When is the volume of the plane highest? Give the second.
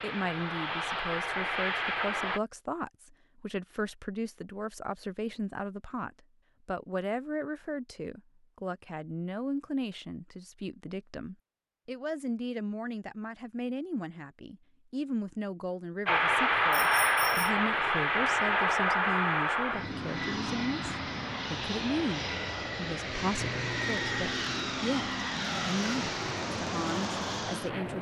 17 s.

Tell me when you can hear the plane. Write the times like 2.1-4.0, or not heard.
0.0-2.4, 16.1-27.9.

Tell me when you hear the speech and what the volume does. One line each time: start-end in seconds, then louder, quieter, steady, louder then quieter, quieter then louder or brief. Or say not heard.
0.0-27.9 steady.